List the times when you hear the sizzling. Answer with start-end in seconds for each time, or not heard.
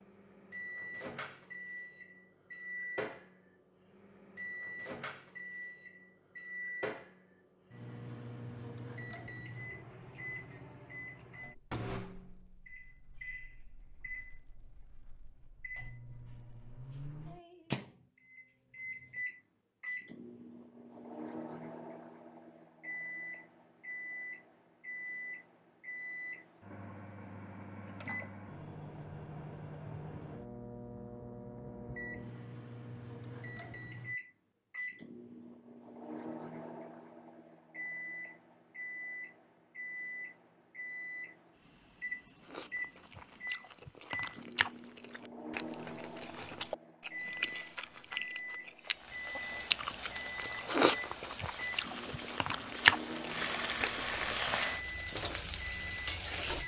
48.9-56.6.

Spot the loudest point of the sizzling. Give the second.
54 s.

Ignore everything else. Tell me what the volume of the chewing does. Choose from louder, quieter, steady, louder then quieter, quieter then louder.
louder.